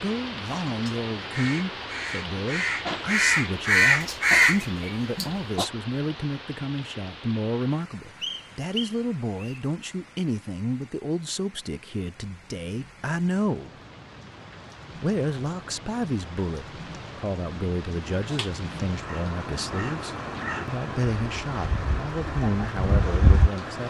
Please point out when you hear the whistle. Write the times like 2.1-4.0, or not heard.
8.2-9.6.